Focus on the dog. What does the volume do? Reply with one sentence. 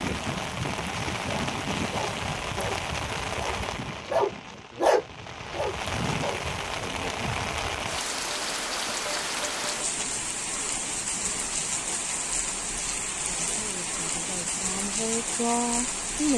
The volume of the dog goes up, then down.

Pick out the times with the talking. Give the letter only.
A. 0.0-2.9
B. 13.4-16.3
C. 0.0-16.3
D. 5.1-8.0
B.